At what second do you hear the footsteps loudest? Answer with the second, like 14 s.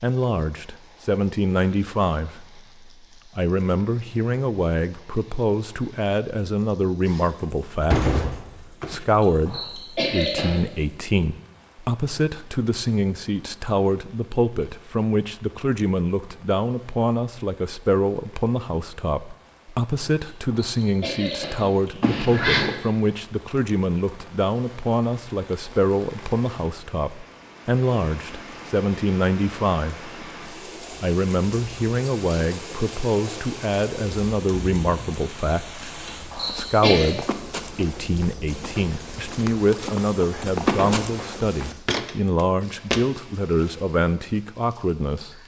41 s.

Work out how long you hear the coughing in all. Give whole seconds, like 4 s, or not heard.
4 s.